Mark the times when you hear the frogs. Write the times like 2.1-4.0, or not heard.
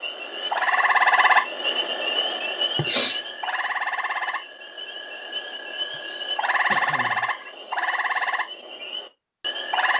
0.0-9.9.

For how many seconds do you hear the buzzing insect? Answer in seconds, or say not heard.
not heard.